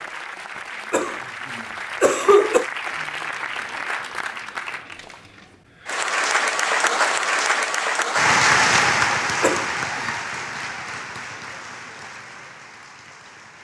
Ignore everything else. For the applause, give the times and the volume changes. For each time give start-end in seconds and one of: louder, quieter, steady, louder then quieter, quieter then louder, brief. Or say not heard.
0.0-13.6 louder then quieter.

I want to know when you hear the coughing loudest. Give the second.
2 s.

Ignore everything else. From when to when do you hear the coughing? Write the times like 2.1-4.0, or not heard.
0.9-2.6, 9.4-10.1.